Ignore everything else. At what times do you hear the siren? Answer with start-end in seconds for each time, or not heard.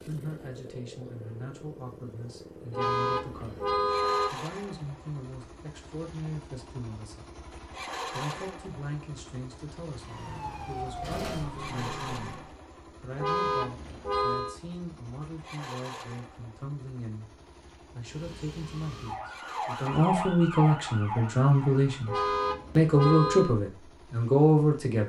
10.0-12.5, 18.0-22.2.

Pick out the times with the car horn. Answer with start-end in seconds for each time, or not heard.
2.7-4.3, 13.2-14.6, 22.1-23.6.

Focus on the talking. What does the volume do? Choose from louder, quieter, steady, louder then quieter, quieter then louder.
louder.